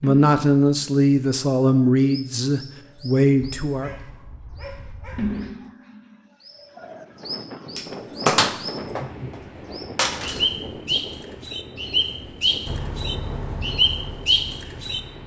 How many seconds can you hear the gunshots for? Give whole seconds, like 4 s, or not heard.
3 s.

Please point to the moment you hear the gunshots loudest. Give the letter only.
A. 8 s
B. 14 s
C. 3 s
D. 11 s
A.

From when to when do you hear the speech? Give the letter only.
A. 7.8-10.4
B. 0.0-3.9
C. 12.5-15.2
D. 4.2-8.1
B.